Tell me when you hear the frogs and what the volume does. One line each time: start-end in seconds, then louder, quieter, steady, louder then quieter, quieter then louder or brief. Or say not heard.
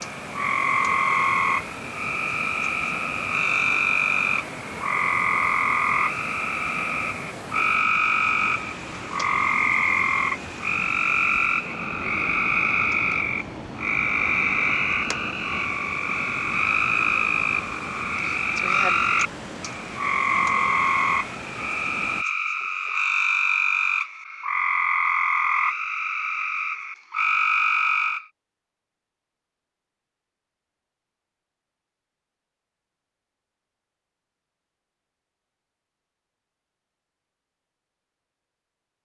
0.0-28.2 steady.